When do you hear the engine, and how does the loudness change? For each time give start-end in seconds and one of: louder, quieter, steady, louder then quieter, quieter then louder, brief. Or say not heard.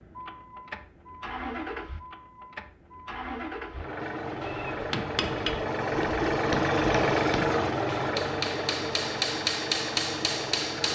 0.0-10.9 louder then quieter.